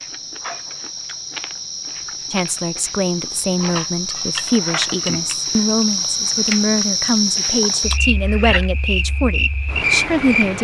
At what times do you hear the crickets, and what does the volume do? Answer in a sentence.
You can hear the crickets from 0.0 to 10.5 s, getting louder.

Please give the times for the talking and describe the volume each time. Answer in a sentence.
The talking can be heard from 2.3 to 10.5 s, at a steady volume.